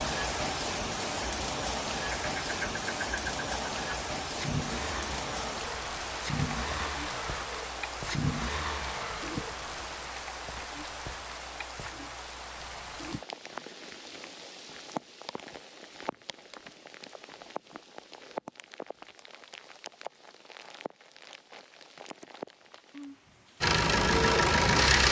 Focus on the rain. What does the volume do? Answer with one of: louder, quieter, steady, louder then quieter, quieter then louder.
quieter.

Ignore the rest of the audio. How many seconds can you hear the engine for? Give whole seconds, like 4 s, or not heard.
9 s.